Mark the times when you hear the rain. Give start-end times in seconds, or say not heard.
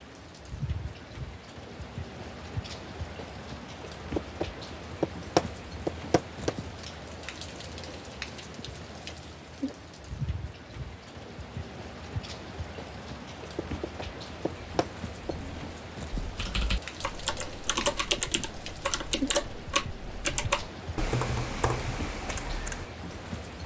0.0-23.6.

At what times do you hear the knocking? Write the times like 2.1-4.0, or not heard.
4.2-6.5, 13.6-15.3.